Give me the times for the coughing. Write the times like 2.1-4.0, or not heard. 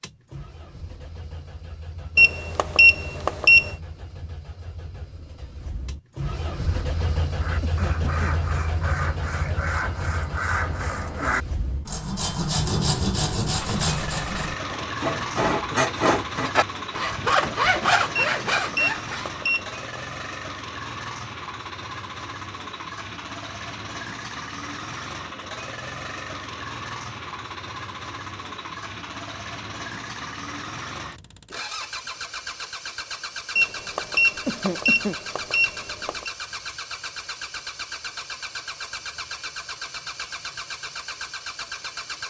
7.6-8.4, 34.5-35.1.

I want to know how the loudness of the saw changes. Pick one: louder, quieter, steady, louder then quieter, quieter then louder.
louder.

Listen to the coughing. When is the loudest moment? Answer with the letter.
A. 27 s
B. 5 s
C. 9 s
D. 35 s
D.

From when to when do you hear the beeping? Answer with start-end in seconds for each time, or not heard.
2.1-3.8, 18.4-19.8, 33.5-36.3.